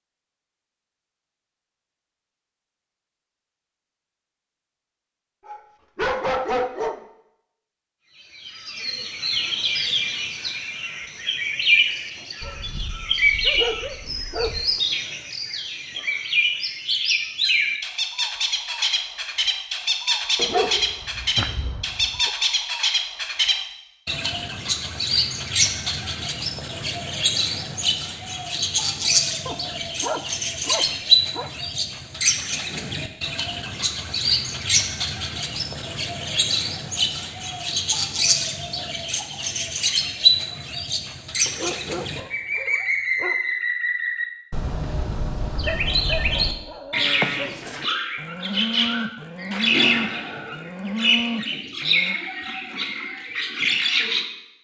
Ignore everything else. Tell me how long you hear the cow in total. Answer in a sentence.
You can hear the cow for 5 seconds altogether.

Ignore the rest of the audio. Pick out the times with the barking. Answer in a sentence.
The barking can be heard from 5.5 to 7.0 s, from 12.4 to 14.8 s, from 20.4 to 22.3 s, from 29.4 to 31.5 s, from 41.5 to 43.4 s and from 45.6 to 47.5 s.